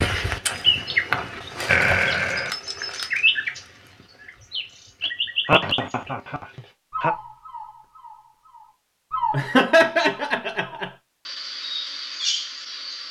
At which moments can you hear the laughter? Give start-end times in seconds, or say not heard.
1.6-2.5, 5.5-7.2, 9.3-10.9.